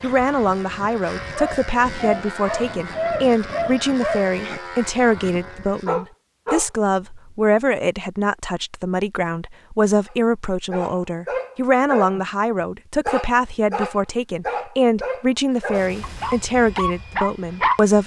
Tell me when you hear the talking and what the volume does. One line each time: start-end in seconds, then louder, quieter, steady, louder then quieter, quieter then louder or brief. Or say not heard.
0.0-18.0 steady.